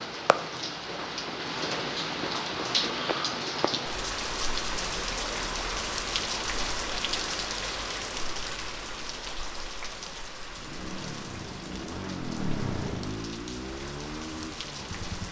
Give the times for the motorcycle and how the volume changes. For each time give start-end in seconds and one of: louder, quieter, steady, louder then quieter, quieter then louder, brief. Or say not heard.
10.4-15.2 louder then quieter.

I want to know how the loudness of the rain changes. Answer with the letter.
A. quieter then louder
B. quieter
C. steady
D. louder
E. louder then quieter
B.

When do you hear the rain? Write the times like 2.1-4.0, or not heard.
0.0-15.2.